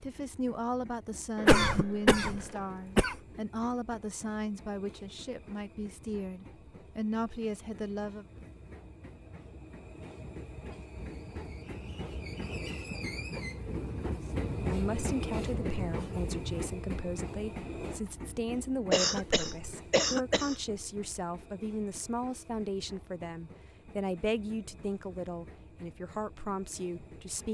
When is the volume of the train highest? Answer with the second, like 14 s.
15 s.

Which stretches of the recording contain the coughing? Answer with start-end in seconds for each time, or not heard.
1.4-3.1, 18.9-20.6.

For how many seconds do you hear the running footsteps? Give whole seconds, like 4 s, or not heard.
not heard.